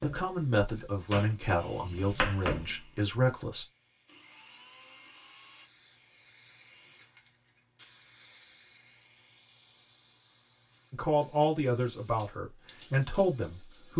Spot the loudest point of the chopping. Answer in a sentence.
The volume of the chopping peaks at 2 seconds.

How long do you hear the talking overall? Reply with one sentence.
You can hear the talking for 7 seconds altogether.